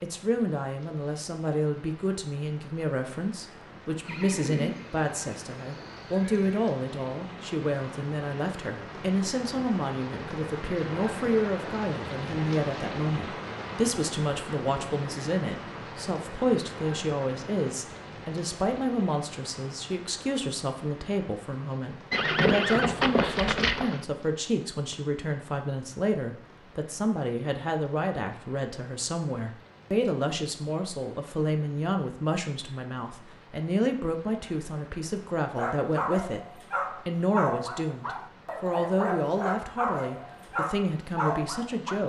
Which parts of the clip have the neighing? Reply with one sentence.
The neighing can be heard from 4.0 to 6.8 s and from 22.1 to 24.1 s.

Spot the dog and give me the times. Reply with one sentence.
You can hear the dog from 35.5 to 42.0 s.